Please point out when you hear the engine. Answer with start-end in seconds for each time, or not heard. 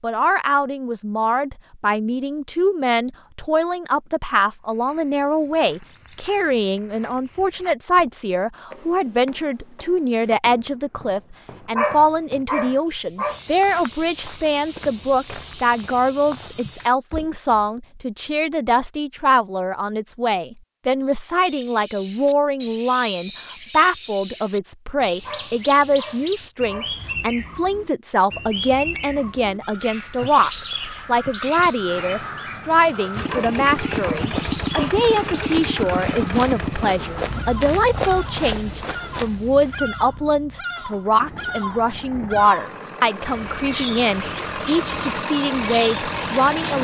33.1-46.7.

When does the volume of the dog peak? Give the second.
12 s.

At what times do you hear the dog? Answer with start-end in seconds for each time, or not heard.
11.8-13.4, 25.2-26.9, 33.2-35.0.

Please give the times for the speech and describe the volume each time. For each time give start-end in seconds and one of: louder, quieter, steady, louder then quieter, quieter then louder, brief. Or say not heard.
0.0-46.7 steady.